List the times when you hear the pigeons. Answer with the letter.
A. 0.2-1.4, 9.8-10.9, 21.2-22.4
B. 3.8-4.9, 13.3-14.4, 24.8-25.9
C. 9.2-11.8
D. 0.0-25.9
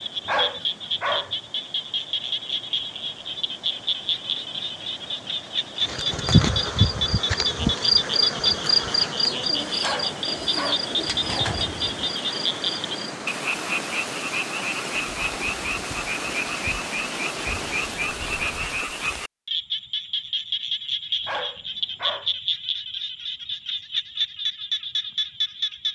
C.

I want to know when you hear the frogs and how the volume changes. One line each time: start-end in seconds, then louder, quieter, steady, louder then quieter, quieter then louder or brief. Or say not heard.
0.0-25.9 steady.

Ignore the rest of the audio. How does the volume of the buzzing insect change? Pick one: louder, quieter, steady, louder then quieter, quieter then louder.
quieter.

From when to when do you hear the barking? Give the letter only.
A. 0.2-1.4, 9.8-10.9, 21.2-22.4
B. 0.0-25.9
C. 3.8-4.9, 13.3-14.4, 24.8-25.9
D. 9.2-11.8
A.